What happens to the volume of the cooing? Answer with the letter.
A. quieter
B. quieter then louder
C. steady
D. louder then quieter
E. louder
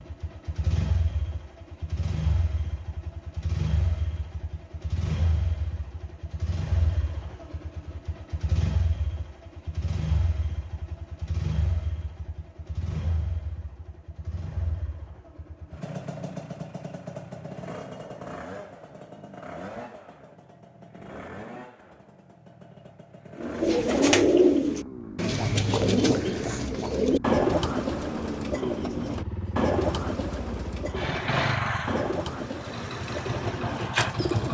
A.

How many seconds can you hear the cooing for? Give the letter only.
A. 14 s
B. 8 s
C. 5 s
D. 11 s
D.